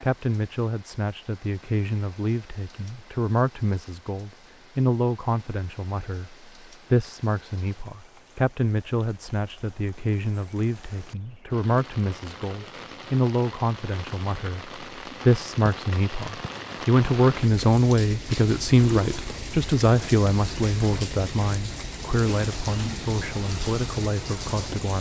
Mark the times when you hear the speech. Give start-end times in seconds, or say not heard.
0.0-24.9.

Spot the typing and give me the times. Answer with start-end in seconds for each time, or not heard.
not heard.